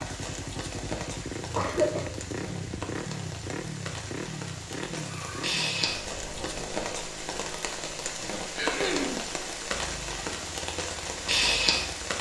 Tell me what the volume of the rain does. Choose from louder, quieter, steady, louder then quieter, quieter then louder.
louder.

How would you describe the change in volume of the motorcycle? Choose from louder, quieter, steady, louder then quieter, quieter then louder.
quieter.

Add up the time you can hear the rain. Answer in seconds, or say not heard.
12 s.